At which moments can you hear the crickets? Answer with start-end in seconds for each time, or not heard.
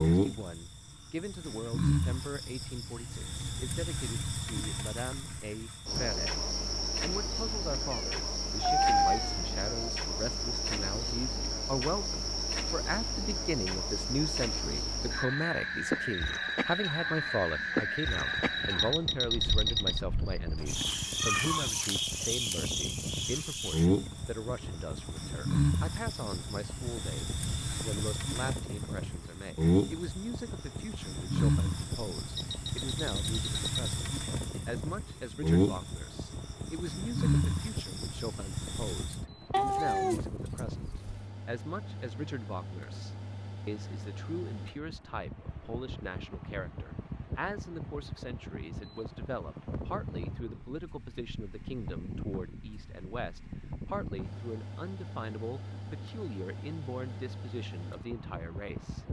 0.0-39.2.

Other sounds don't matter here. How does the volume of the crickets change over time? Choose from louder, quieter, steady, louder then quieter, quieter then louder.
steady.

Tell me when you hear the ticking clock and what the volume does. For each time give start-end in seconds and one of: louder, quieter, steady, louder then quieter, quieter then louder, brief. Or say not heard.
not heard.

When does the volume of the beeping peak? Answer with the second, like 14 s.
20 s.